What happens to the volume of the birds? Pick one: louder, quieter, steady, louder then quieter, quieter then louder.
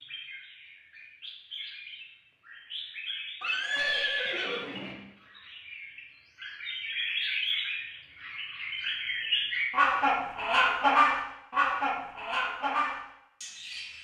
louder.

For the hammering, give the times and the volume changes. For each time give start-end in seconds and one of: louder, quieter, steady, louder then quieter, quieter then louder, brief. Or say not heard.
not heard.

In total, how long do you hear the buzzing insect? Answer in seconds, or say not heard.
not heard.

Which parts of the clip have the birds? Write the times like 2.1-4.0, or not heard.
0.0-13.9.